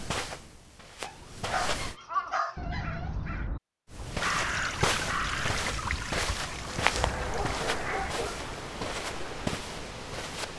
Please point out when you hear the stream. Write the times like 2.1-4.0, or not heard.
4.2-10.5.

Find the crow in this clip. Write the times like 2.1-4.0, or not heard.
2.0-8.3.